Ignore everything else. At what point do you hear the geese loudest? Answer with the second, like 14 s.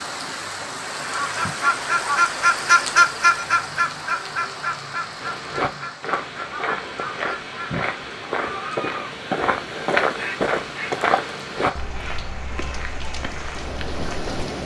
3 s.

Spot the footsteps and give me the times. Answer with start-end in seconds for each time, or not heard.
5.2-14.4.